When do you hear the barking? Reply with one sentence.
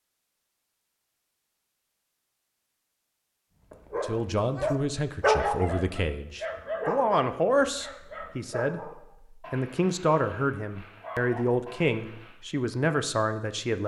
You can hear the barking from 3.7 to 12.3 s.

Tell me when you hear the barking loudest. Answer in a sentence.
The volume of the barking peaks at 5 seconds.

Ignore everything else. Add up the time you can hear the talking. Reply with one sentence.
You can hear the talking for 10 seconds altogether.